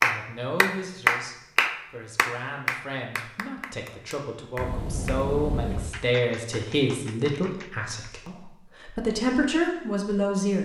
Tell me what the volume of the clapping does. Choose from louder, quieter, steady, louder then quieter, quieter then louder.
quieter.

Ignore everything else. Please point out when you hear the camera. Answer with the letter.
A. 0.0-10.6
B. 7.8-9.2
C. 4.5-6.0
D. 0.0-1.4
C.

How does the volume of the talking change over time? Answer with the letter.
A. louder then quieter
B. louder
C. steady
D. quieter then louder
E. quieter
B.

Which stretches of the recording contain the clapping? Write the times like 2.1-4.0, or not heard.
0.0-7.7.